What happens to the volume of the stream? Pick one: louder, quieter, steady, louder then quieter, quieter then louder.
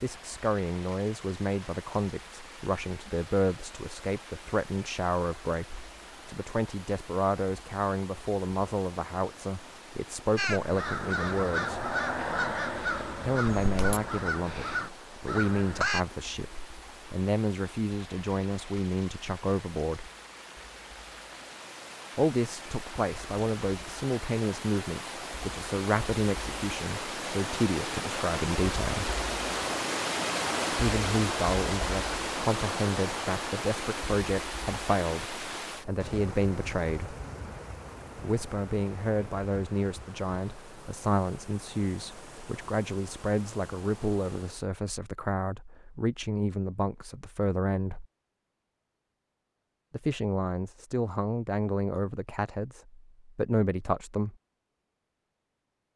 louder then quieter.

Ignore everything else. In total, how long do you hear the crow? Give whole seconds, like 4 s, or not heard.
6 s.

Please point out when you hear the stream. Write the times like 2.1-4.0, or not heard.
0.0-44.7.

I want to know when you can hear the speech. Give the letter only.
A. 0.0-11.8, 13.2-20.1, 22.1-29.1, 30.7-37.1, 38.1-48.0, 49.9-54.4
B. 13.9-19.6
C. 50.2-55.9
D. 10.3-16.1
A.